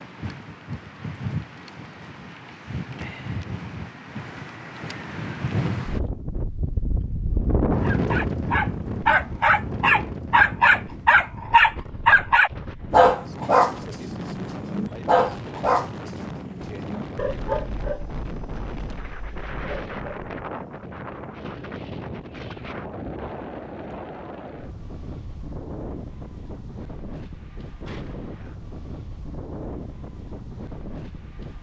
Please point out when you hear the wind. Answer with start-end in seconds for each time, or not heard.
0.0-31.5.